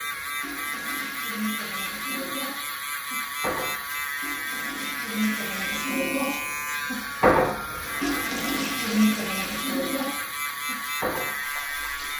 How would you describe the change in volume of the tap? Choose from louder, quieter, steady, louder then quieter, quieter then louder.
louder then quieter.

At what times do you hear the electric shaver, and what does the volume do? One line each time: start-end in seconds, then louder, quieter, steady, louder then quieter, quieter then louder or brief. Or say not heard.
0.0-12.1 steady.